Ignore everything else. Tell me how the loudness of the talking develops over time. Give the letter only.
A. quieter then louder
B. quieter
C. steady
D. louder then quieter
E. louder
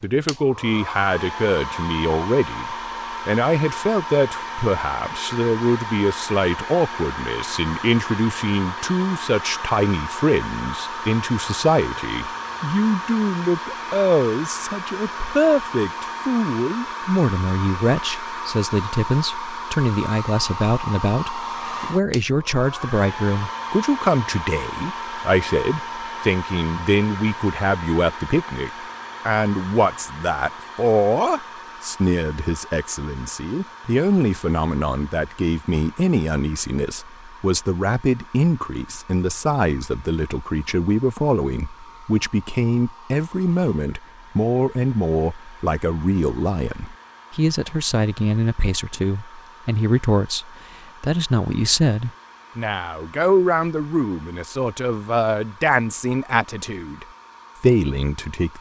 C.